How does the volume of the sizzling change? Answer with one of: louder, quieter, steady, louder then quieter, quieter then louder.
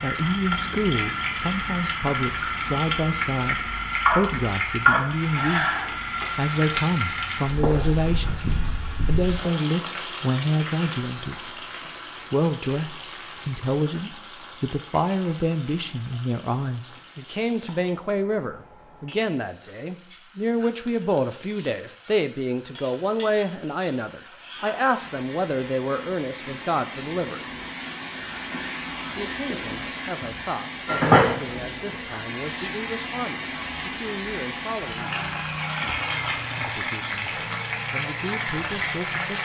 quieter then louder.